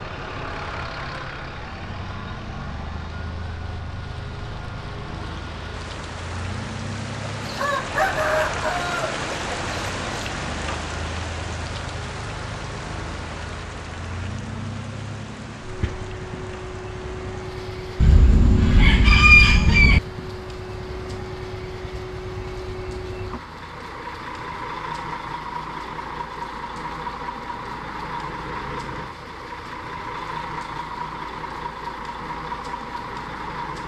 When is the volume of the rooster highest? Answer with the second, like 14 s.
19 s.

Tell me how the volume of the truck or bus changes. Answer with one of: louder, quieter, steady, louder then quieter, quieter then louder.
steady.